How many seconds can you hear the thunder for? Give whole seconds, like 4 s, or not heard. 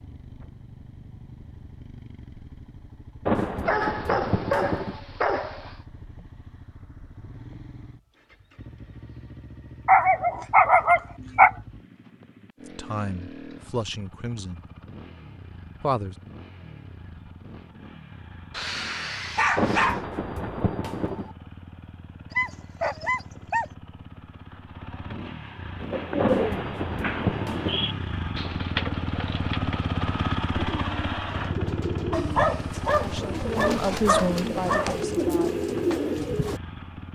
5 s.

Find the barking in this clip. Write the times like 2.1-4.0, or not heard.
3.6-5.8, 9.8-11.5, 18.5-20.0, 22.3-23.6, 32.1-35.0.